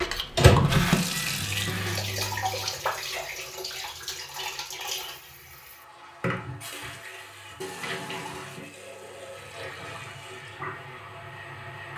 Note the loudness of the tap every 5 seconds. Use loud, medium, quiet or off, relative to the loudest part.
loud, medium, medium.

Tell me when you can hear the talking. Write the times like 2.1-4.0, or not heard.
not heard.